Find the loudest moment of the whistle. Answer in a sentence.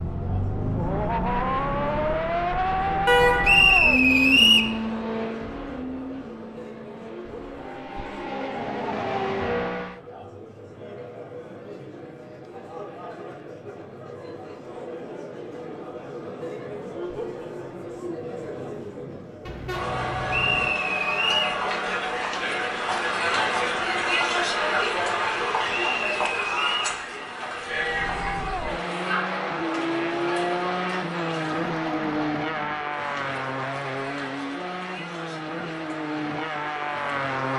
The loudest moment of the whistle is at 4 seconds.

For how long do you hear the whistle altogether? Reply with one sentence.
You can hear the whistle for 4 seconds altogether.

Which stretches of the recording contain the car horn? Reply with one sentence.
You can hear the car horn from 3.0 to 3.7 s and from 19.4 to 20.7 s.